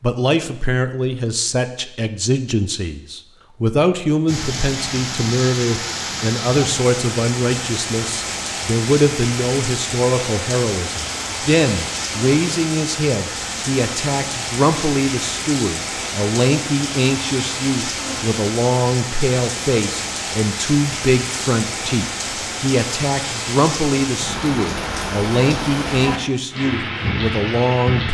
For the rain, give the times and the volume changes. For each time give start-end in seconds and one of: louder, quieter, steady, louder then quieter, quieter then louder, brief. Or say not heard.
4.2-28.0 steady.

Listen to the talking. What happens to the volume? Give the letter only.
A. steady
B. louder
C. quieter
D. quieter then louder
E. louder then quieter
A.